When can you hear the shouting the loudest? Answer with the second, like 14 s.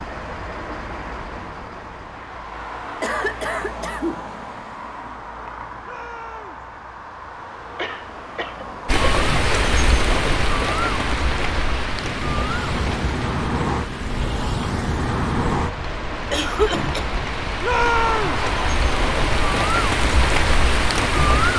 18 s.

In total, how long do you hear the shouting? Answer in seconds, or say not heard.
2 s.